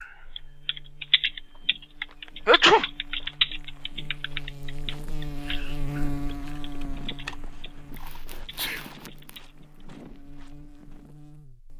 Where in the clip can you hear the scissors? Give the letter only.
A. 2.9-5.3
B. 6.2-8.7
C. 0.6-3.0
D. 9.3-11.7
B.